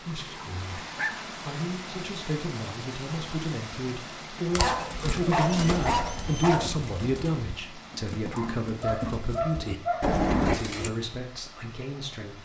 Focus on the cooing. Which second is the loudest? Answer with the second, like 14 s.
10 s.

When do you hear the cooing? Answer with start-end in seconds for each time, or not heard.
4.5-10.9.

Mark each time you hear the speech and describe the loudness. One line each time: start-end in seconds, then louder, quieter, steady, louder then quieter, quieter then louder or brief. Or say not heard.
0.0-12.4 louder then quieter.